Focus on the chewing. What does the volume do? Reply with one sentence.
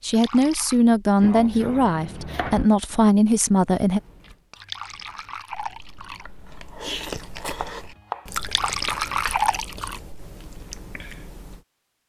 The volume of the chewing goes up, then down.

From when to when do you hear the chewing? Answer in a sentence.
The chewing can be heard from 3.8 to 11.6 s.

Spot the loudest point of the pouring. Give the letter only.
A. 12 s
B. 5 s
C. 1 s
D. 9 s
D.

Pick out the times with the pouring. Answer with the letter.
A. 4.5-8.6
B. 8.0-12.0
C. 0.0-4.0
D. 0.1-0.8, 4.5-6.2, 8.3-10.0
D.